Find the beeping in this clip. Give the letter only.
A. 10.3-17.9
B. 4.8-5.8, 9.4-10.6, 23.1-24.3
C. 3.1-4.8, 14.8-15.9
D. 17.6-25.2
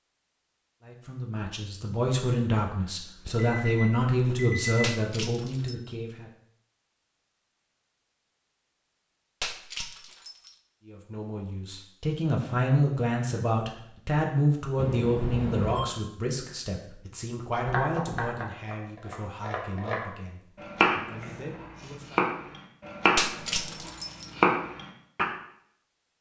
C.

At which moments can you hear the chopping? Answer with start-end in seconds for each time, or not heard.
17.6-25.2.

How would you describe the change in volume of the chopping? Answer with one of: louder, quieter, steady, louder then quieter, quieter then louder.
louder.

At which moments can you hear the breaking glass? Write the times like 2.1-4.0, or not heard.
4.8-5.8, 9.4-10.6, 23.1-24.3.